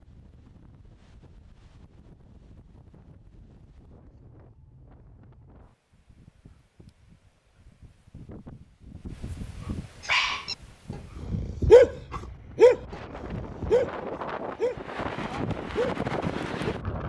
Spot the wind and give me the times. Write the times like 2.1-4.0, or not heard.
0.0-17.0.